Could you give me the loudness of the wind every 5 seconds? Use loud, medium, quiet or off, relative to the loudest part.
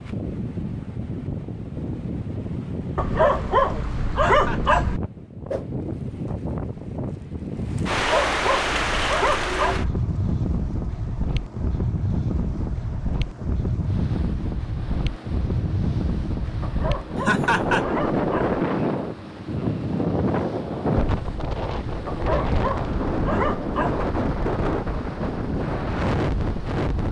medium, loud, loud, loud, loud, loud.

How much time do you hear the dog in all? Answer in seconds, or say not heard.
8 s.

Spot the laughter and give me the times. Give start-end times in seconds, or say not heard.
4.2-4.8, 17.2-17.9.